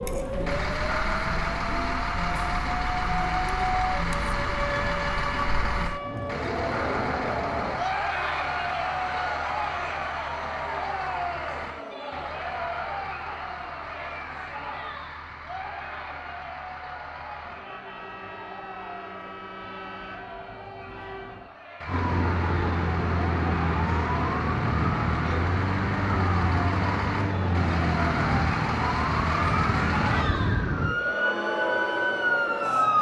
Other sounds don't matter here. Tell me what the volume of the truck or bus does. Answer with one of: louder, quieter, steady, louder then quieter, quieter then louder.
quieter then louder.